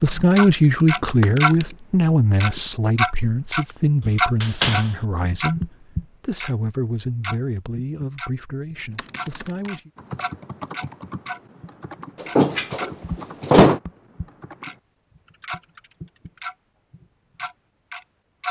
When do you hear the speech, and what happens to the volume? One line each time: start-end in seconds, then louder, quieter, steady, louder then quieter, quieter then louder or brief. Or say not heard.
0.0-9.9 quieter.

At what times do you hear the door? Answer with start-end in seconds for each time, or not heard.
4.0-4.8, 12.2-13.8.